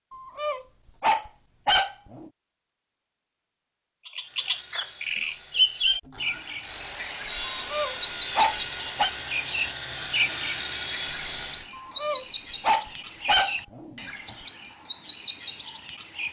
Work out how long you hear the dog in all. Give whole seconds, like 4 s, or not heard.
6 s.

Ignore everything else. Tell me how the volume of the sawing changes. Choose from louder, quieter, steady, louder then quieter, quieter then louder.
louder.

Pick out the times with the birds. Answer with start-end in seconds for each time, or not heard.
4.0-16.2.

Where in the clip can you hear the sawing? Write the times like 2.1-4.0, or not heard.
4.2-11.7.